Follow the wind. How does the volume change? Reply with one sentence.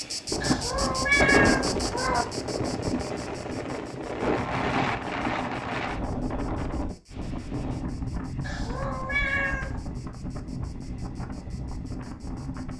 The volume of the wind goes down.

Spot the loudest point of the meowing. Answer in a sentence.
The volume of the meowing peaks at 1 second.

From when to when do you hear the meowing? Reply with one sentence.
The meowing can be heard from 0.4 to 2.2 s and from 8.4 to 9.8 s.